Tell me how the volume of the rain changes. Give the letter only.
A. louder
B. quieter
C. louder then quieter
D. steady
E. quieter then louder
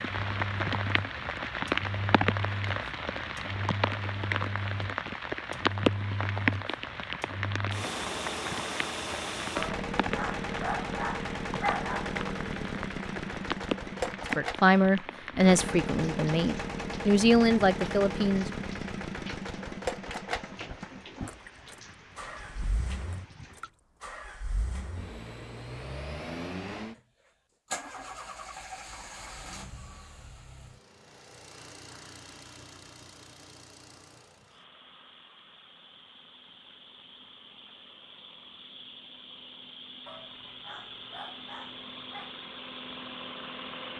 B.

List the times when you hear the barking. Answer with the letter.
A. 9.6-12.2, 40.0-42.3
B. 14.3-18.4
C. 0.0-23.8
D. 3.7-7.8
A.